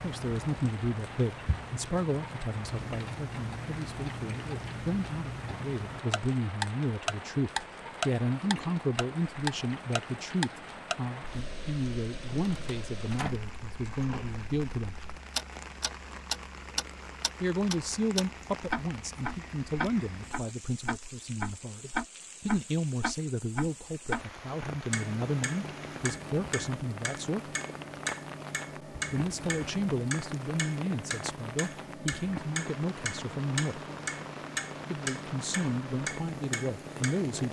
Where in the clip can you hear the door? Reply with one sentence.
You can hear the door from 12.2 to 13.5 s.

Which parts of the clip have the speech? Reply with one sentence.
You can hear the speech from 0.0 to 14.9 s, from 17.4 to 27.4 s, from 29.1 to 33.8 s and from 34.9 to 37.4 s.